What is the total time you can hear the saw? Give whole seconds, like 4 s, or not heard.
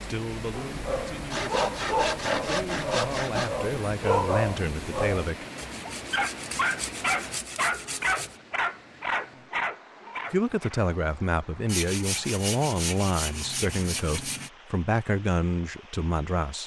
8 s.